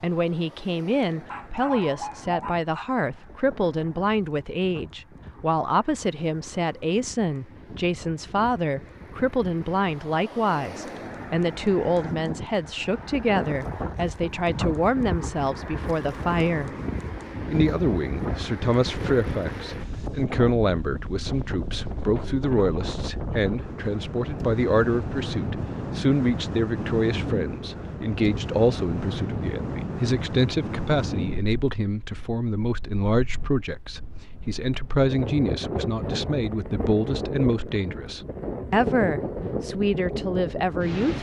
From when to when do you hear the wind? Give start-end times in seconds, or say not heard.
0.0-41.1.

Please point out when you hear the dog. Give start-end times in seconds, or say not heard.
1.2-2.9.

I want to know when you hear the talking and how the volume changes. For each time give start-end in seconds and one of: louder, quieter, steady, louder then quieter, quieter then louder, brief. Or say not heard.
0.0-16.7 steady
17.4-41.1 steady.